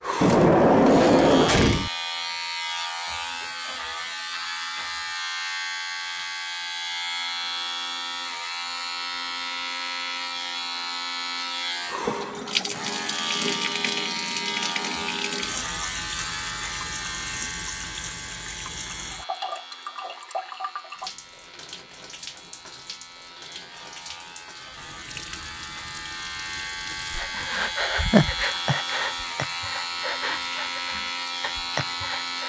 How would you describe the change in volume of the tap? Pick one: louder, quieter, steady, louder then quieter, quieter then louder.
quieter.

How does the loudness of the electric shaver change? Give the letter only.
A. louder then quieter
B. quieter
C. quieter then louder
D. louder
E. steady
C.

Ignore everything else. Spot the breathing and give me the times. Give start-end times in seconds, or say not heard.
27.1-32.4.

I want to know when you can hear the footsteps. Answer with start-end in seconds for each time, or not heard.
not heard.